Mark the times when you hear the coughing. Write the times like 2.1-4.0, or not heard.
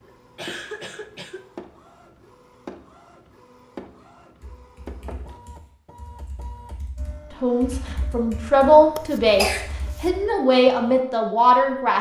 0.3-1.5, 8.9-10.1.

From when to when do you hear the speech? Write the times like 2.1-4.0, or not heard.
7.3-11.9.